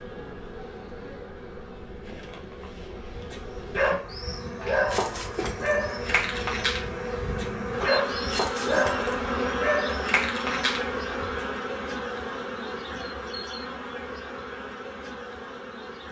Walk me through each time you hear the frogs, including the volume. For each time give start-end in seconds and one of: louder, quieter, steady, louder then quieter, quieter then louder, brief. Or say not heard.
not heard.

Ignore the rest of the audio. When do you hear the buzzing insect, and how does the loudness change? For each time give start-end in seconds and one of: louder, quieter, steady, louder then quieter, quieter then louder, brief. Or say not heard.
0.0-16.0 louder then quieter.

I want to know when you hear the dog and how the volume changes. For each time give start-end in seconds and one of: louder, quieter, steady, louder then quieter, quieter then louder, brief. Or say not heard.
3.1-11.4 steady.